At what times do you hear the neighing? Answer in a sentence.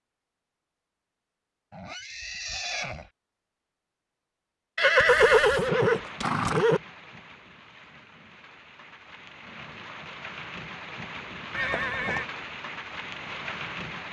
The neighing can be heard from 1.7 to 3.0 s, from 4.8 to 6.8 s and from 11.5 to 12.3 s.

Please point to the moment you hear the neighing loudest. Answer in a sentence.
The loudest moment of the neighing is at 5 seconds.